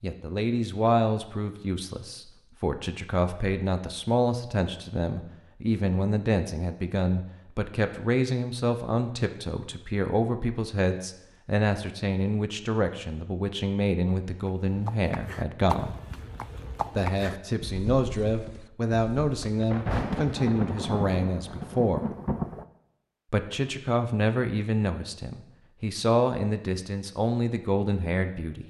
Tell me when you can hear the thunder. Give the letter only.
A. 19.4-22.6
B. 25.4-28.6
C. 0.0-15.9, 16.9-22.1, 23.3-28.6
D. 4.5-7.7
A.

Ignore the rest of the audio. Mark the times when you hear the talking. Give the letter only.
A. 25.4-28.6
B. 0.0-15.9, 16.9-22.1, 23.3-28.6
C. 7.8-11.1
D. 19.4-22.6
B.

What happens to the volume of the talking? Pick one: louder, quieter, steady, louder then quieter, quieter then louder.
steady.